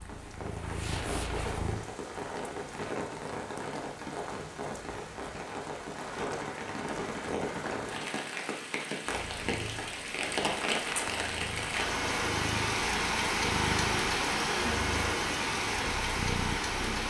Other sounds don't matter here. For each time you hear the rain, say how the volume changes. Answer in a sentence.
You can hear the rain from 0.0 to 17.0 s, getting louder.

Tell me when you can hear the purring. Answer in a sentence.
You can hear the purring from 0.0 to 1.9 s and from 9.1 to 17.0 s.